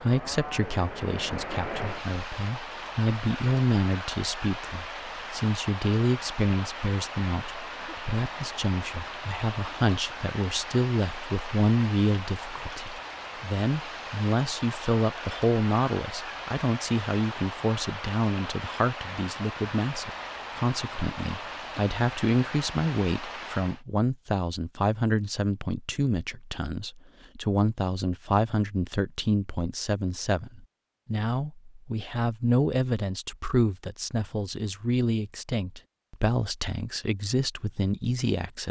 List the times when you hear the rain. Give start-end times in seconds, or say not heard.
0.0-23.9.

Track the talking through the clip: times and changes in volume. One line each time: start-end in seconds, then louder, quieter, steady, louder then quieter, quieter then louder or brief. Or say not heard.
0.0-38.6 steady.